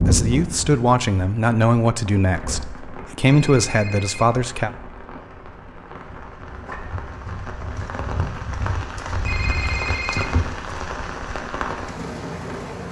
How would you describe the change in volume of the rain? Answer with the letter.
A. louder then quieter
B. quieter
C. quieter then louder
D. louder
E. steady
D.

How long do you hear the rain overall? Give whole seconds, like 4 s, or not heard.
13 s.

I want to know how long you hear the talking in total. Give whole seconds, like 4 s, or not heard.
5 s.